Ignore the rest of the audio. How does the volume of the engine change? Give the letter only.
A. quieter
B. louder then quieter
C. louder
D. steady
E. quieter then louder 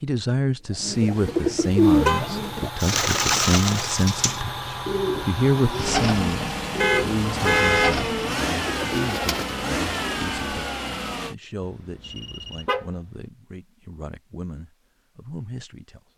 C.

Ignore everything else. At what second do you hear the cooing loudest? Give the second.
2 s.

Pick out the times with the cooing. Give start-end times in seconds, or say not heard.
0.7-9.7.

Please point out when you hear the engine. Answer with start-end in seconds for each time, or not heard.
1.8-11.3.